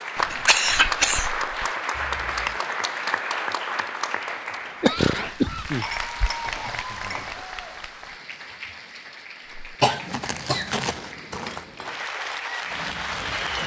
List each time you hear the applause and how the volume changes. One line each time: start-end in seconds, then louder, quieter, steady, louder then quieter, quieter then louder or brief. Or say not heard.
0.0-13.6 quieter then louder.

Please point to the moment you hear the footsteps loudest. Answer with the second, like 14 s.
11 s.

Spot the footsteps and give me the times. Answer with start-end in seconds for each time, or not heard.
9.4-11.9.